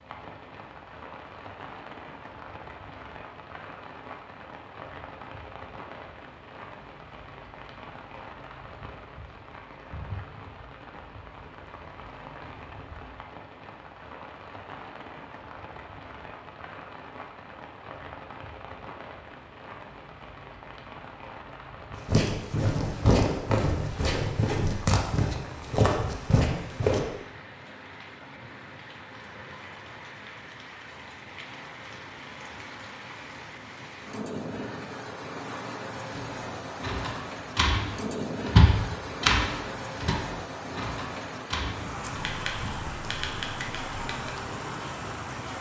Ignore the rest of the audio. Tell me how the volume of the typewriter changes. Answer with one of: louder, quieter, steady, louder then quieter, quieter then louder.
louder then quieter.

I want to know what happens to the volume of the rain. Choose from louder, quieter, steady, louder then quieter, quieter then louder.
louder.